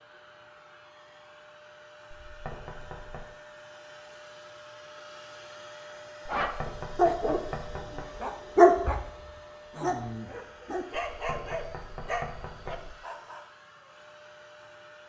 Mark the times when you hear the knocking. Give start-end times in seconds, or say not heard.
2.2-3.4, 6.4-8.1, 11.1-12.9.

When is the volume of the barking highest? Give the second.
9 s.